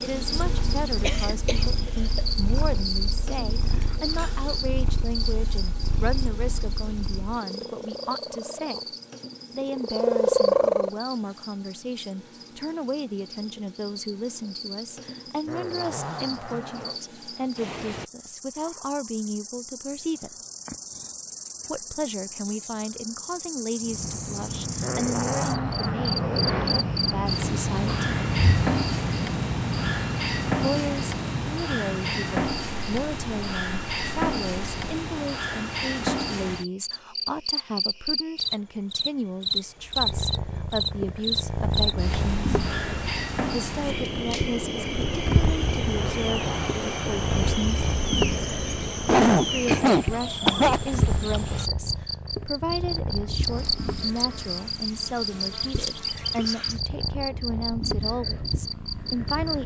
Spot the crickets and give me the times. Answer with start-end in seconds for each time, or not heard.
0.0-59.6.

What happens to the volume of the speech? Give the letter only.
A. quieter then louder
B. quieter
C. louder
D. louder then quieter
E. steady
E.